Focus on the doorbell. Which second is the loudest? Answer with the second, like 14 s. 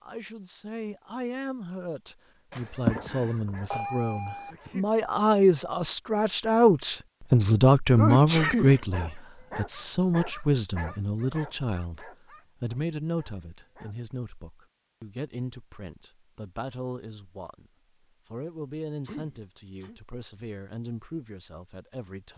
3 s.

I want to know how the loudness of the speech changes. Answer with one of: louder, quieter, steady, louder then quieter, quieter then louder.
louder then quieter.